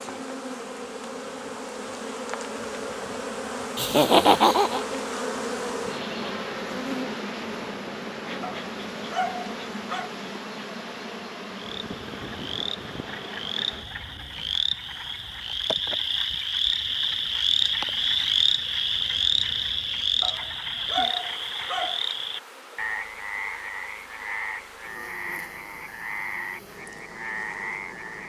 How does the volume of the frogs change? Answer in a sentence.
The loudness of the frogs goes up, then down.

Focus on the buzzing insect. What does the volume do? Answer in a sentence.
The volume of the buzzing insect goes down.